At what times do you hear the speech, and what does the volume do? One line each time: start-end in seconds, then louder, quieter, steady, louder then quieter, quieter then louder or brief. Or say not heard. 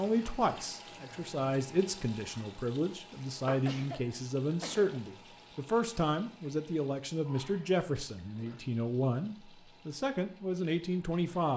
0.0-11.5 steady.